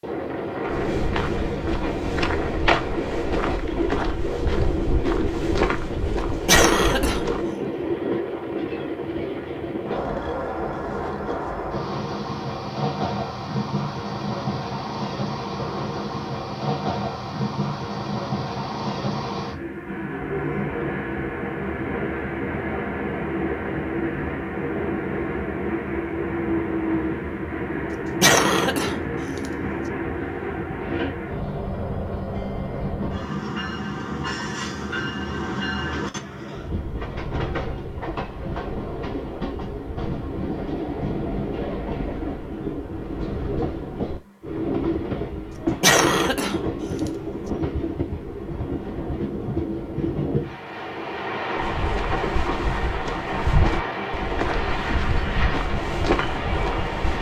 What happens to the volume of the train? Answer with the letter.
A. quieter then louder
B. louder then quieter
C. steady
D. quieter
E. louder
C.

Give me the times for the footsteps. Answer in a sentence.
The footsteps can be heard from 0.7 to 7.5 s and from 51.5 to 57.1 s.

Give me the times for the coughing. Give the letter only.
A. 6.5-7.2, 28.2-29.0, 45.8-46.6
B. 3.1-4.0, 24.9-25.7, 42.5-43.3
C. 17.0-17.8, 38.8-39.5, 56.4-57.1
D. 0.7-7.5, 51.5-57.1
A.